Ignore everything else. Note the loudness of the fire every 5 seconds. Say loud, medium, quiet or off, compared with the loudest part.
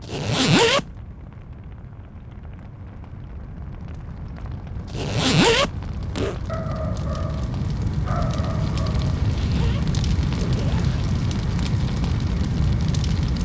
quiet, loud, loud.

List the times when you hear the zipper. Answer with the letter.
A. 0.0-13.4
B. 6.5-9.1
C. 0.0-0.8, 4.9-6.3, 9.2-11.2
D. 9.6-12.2
C.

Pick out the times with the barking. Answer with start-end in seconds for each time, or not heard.
6.5-9.1.